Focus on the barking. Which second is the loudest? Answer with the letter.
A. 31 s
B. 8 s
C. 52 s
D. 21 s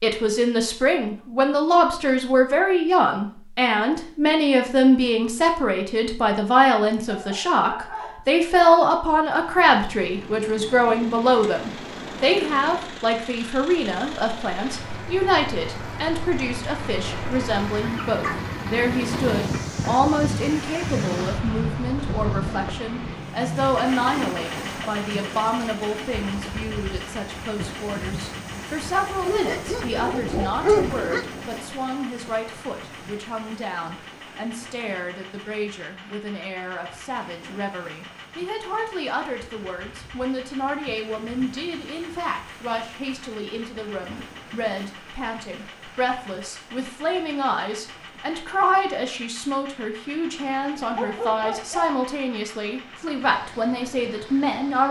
A.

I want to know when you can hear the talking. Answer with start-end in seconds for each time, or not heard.
0.0-54.8.